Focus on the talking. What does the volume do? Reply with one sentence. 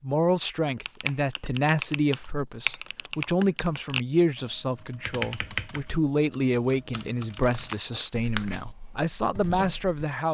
The volume of the talking stays about the same.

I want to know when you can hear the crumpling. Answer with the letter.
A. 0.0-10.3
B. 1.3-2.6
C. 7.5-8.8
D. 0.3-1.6
C.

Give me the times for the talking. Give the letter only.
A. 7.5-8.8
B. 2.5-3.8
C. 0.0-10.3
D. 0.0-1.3
C.